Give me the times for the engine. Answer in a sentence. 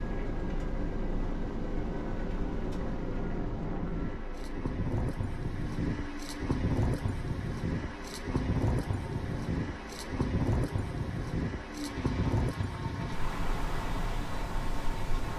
You can hear the engine from 0.0 to 15.3 s.